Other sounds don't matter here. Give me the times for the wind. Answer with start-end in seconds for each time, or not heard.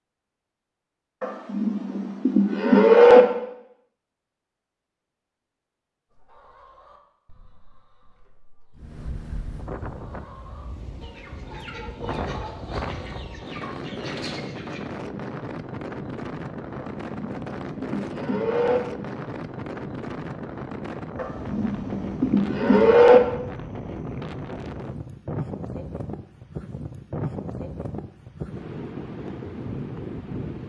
8.8-30.6.